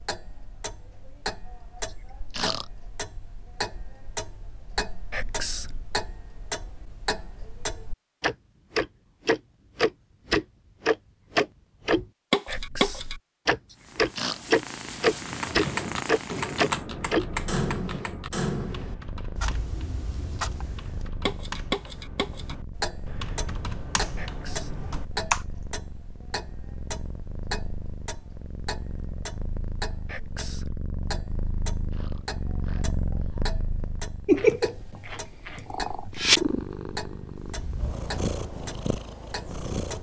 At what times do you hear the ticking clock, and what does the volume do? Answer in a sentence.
You can hear the ticking clock from 0.0 to 39.9 s, getting louder then quieter.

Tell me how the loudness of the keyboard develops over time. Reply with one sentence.
The loudness of the keyboard goes down, then up.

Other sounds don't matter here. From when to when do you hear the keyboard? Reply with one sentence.
The keyboard can be heard from 15.1 to 25.4 s.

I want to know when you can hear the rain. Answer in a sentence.
The rain can't be heard in this clip.